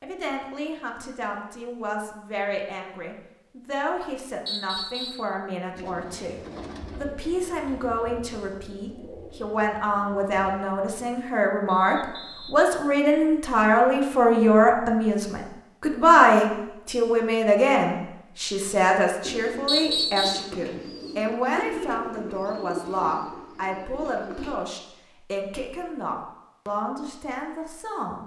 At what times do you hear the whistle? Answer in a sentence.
The whistle can be heard from 4.5 to 5.3 s, from 11.7 to 12.6 s and from 19.6 to 20.5 s.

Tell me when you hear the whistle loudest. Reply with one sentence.
The loudest moment of the whistle is at 20 seconds.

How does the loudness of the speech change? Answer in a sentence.
The volume of the speech goes up, then down.